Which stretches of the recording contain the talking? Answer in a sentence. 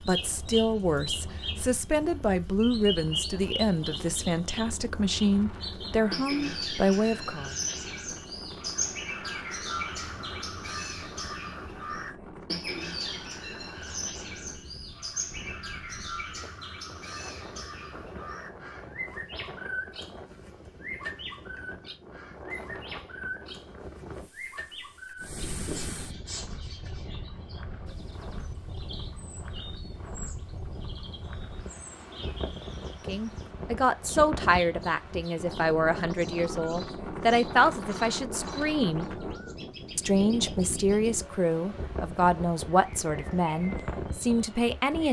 The talking can be heard from 0.1 to 7.5 s, from 33.0 to 39.1 s and from 40.0 to 45.0 s.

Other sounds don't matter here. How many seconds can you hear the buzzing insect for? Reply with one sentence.
The buzzing insect can't be heard in this clip.